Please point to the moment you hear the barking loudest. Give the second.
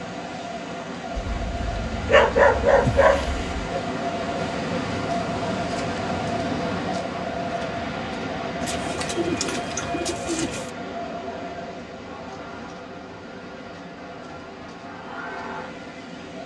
2 s.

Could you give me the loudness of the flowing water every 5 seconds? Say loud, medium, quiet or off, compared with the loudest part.
loud, loud, medium, medium.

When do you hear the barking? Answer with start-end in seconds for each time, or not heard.
1.1-3.6.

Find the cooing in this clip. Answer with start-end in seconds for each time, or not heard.
8.6-10.7.